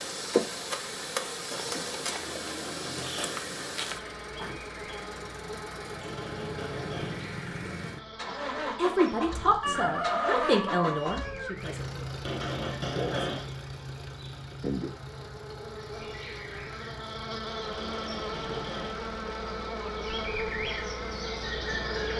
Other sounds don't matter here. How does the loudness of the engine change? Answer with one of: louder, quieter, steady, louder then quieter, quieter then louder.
louder then quieter.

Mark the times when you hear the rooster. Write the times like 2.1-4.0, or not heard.
9.6-11.6.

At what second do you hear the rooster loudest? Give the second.
10 s.